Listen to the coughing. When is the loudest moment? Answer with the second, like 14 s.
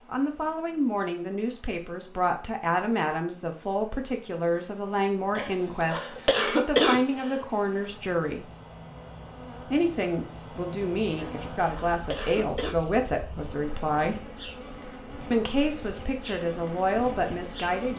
7 s.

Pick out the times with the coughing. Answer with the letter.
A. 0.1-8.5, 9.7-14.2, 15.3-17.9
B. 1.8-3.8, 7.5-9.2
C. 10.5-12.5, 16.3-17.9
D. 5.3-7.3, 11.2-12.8
D.